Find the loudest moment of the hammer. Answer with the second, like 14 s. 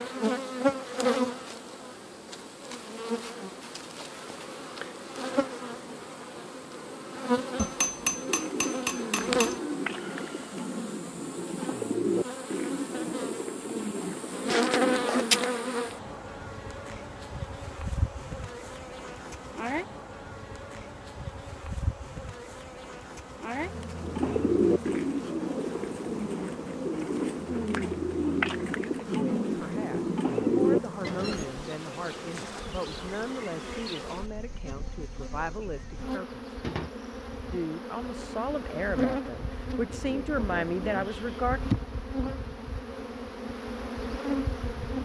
8 s.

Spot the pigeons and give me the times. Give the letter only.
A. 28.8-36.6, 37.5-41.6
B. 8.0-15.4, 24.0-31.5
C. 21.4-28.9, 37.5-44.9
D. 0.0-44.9
B.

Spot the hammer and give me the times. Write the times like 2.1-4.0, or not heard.
7.5-9.6.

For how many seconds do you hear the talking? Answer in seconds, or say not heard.
12 s.